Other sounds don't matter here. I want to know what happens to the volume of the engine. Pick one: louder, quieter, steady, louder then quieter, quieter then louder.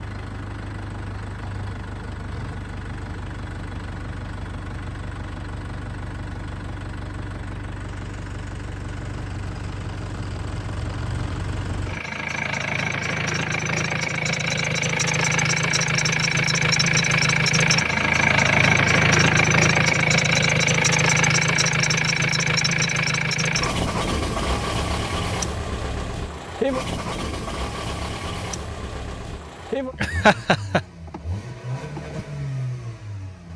louder then quieter.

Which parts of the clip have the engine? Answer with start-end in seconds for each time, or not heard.
0.0-33.5.